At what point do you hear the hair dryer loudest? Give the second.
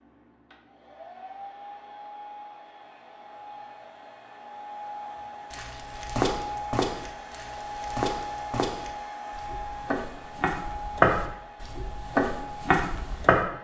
8 s.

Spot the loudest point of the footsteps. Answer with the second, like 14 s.
11 s.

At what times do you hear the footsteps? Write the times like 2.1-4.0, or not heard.
5.5-13.4.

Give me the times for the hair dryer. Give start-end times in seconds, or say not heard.
0.0-13.5.